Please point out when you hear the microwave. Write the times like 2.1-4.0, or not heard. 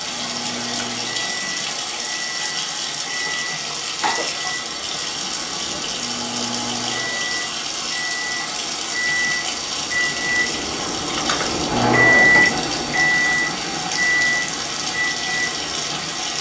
0.0-16.3.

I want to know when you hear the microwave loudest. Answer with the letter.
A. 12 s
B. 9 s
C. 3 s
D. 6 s
A.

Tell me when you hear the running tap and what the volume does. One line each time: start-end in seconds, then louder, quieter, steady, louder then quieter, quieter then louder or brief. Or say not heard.
0.0-16.3 steady.